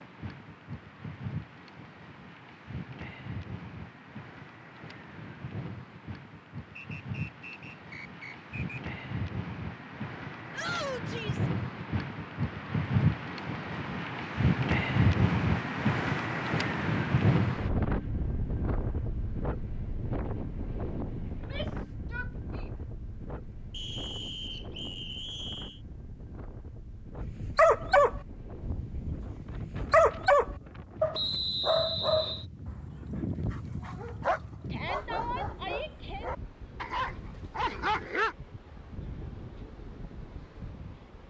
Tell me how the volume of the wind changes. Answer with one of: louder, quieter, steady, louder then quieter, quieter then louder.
louder then quieter.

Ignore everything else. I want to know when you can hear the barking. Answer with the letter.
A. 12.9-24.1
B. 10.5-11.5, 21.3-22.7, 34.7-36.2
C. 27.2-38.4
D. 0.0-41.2
C.